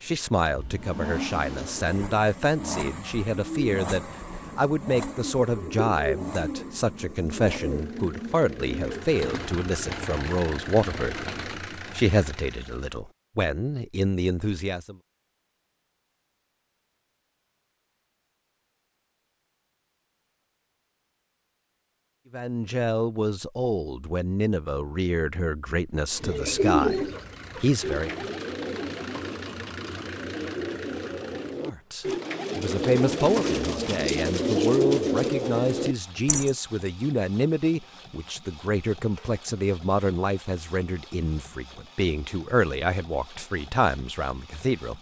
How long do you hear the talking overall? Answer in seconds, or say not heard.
34 s.